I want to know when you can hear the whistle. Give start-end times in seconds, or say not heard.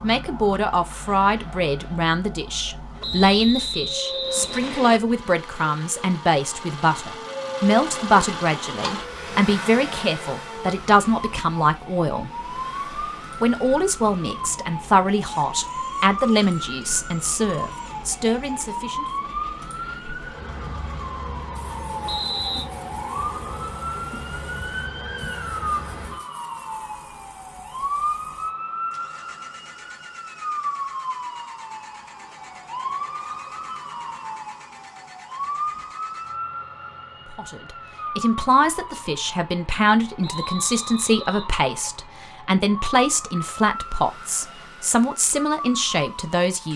3.0-5.0, 22.1-22.6, 40.2-41.5.